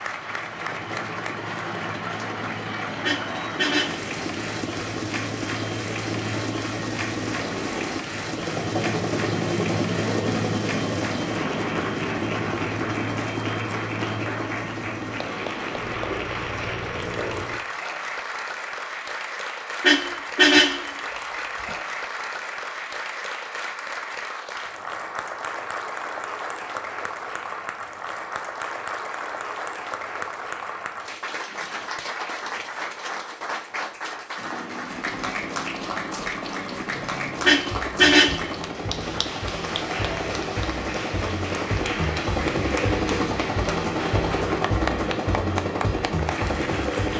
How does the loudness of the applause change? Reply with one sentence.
The volume of the applause stays about the same.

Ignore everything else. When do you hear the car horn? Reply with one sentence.
The car horn can be heard from 3.0 to 4.1 s, from 19.8 to 20.9 s and from 37.5 to 38.5 s.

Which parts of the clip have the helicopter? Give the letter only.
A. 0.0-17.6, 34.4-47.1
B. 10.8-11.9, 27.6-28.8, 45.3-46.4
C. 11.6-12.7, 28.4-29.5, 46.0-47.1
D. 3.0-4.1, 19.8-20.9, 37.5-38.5
A.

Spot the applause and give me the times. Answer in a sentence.
You can hear the applause from 0.0 to 47.1 s.